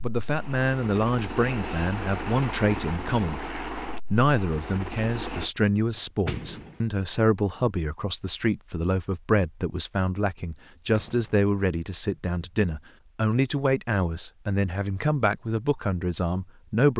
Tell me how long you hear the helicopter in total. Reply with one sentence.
You can hear the helicopter for 5 seconds altogether.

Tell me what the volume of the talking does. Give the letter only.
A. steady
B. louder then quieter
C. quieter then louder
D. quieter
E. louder
A.